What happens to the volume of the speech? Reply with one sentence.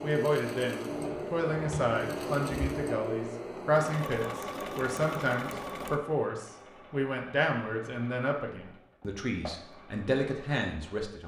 The loudness of the speech stays about the same.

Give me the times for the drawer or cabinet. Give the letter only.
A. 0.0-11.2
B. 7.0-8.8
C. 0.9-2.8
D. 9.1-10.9
C.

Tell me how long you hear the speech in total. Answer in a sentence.
You can hear the speech for 11 seconds altogether.